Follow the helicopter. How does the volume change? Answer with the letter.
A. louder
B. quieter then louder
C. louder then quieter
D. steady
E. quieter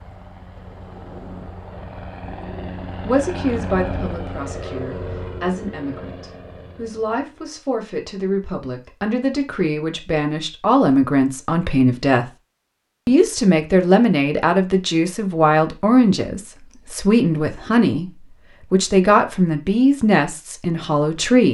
C.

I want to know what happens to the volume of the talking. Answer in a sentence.
The volume of the talking goes up.